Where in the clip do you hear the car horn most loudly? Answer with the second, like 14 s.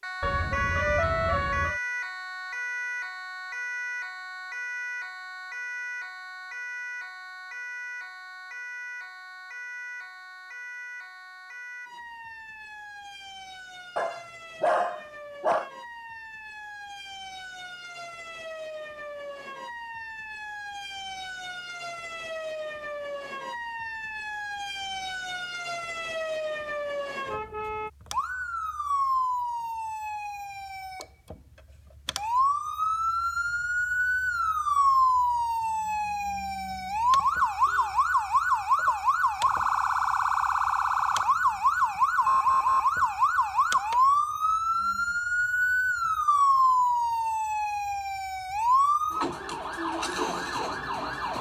1 s.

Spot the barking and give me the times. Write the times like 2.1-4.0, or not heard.
13.9-15.7.